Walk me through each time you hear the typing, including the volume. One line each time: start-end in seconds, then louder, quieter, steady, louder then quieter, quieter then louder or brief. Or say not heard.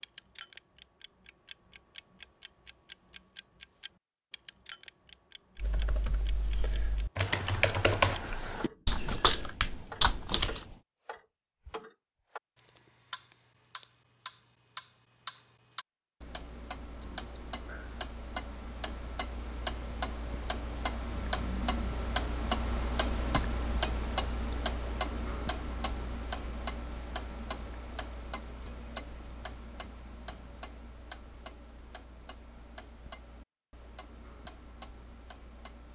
5.5-10.8 louder.